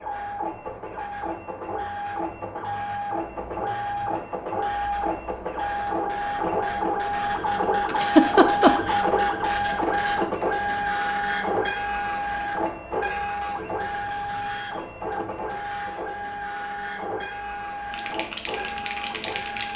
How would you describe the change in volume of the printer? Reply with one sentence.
The volume of the printer goes up, then down.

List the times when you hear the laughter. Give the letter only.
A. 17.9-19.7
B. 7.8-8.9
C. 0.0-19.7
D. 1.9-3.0
B.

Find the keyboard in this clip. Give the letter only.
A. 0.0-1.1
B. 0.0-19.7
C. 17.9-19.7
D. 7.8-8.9
C.